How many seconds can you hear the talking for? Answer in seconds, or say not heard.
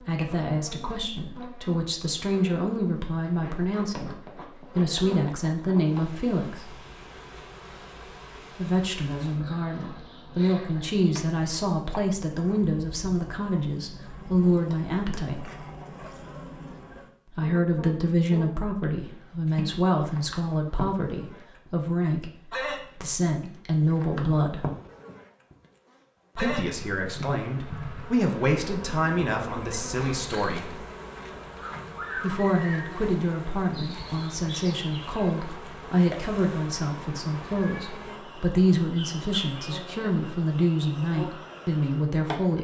35 s.